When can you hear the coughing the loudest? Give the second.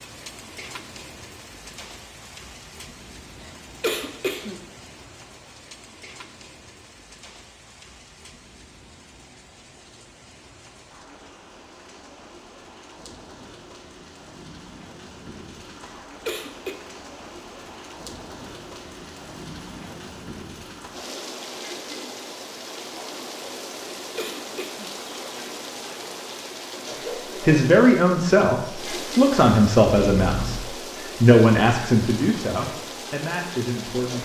4 s.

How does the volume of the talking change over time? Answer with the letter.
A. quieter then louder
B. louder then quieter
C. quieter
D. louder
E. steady
C.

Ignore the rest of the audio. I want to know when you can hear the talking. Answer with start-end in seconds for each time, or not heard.
27.4-34.2.